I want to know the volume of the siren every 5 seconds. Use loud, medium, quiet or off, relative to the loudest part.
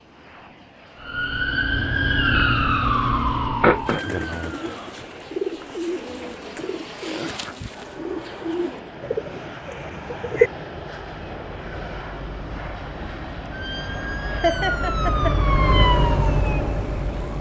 loud, off, medium, loud.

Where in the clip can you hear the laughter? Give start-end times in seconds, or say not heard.
14.4-15.4.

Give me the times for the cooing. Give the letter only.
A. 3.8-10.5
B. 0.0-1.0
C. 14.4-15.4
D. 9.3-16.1
A.